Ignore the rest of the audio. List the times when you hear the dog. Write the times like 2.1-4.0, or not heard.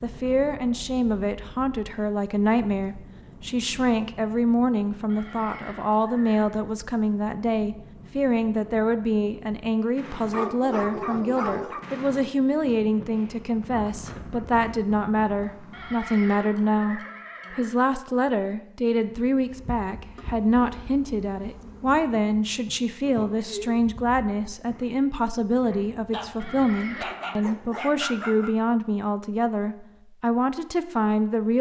10.3-11.8, 26.1-28.6.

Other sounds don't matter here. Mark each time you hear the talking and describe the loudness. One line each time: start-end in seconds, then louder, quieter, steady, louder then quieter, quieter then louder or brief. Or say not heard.
0.0-31.5 steady.